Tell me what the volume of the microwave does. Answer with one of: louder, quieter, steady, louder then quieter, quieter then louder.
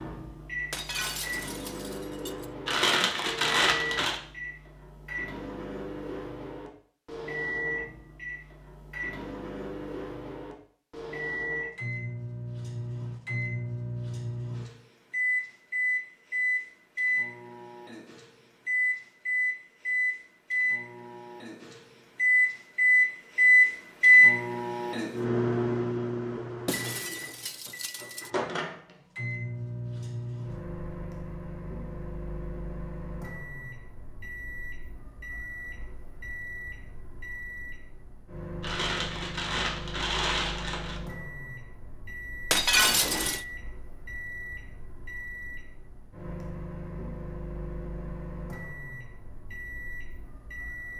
louder then quieter.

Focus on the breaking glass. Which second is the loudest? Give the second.
43 s.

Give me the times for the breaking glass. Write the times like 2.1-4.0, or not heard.
0.7-2.5, 26.6-28.3, 42.5-43.5.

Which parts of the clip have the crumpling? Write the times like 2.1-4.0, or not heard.
2.6-4.2, 38.6-41.0.